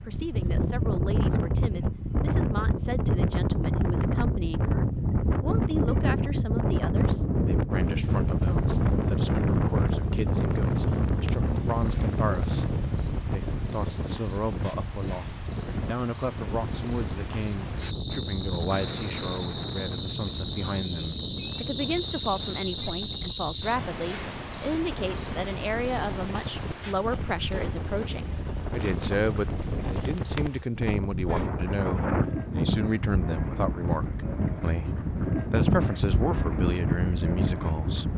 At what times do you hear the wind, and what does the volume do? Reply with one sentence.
You can hear the wind from 0.0 to 38.1 s, getting quieter then louder.